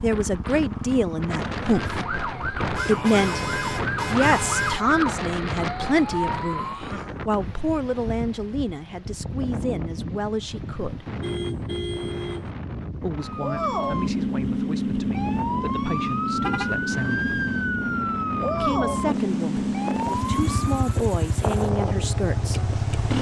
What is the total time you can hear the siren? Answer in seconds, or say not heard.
13 s.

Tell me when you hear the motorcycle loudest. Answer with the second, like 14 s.
23 s.